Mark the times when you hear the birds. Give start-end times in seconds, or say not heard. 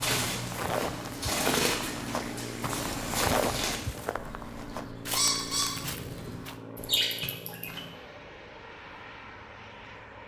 0.0-7.8.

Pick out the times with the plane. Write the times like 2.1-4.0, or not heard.
0.0-10.2.